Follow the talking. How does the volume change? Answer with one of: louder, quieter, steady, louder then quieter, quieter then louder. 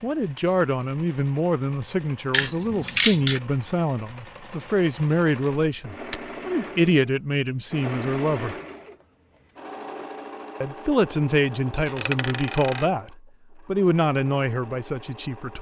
steady.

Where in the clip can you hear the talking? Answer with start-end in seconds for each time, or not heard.
0.0-8.6, 10.6-15.5.